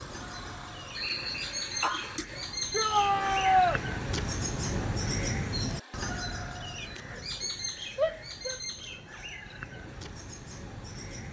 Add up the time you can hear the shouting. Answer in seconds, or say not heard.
2 s.